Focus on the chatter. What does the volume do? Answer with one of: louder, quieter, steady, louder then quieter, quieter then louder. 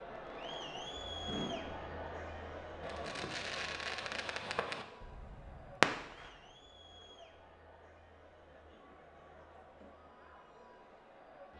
quieter.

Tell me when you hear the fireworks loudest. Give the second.
6 s.